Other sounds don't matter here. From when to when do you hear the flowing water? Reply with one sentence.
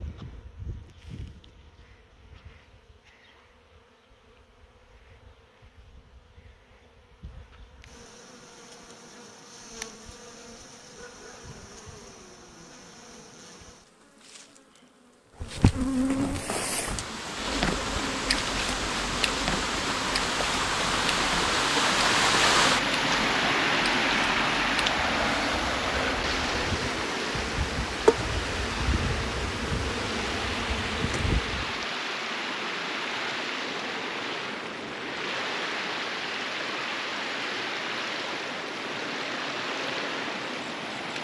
The flowing water can be heard from 16.3 to 41.1 s.